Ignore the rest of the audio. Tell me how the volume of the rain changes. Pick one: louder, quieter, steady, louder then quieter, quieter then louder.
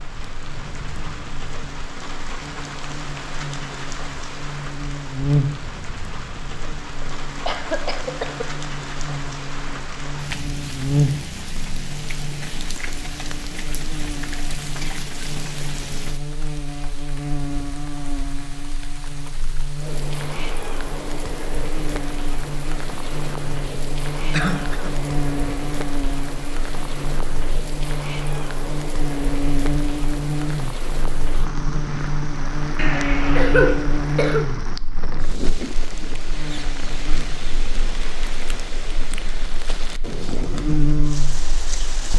steady.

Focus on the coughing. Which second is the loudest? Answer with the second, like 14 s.
34 s.